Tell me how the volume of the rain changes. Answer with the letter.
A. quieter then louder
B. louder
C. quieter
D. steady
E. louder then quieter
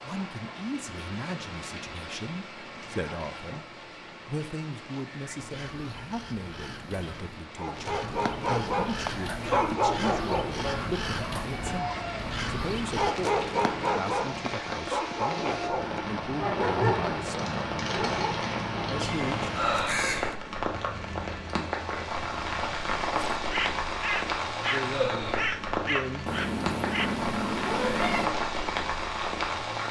B.